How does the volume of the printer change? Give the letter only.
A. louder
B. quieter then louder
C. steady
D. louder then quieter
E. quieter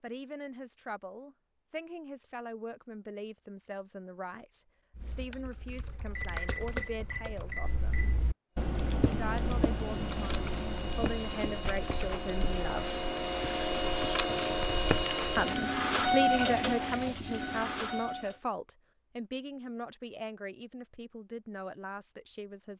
A.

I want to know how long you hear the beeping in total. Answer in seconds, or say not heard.
2 s.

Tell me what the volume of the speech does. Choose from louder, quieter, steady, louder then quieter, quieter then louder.
louder then quieter.